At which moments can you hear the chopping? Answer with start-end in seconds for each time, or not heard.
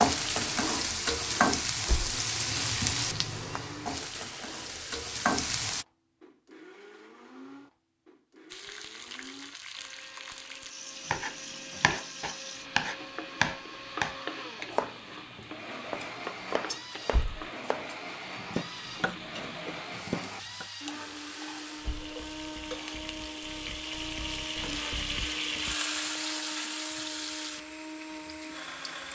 11.1-20.6.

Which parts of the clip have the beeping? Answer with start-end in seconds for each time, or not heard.
not heard.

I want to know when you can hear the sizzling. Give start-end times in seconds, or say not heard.
0.0-5.8, 8.5-29.1.